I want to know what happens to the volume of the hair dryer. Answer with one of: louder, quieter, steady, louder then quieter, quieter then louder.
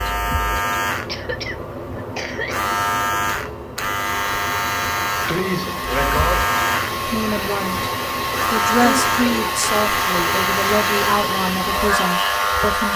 louder.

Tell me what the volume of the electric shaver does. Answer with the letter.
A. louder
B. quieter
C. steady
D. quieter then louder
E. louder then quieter
C.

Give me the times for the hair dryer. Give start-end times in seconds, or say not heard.
4.0-12.9.